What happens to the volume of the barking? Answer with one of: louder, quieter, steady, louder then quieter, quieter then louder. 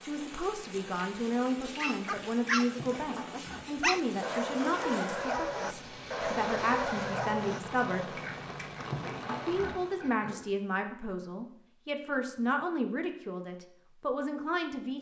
steady.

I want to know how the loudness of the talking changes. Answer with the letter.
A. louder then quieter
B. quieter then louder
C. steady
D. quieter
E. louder
C.